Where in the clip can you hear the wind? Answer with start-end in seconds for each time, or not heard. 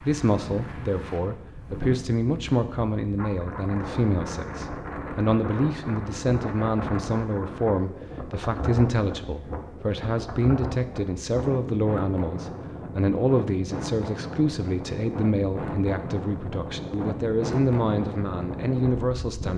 0.0-19.5.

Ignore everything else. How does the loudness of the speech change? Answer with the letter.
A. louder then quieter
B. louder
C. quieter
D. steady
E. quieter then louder
D.